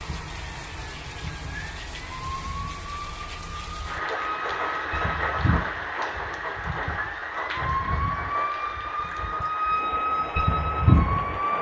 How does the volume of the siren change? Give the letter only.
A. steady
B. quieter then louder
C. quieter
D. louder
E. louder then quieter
D.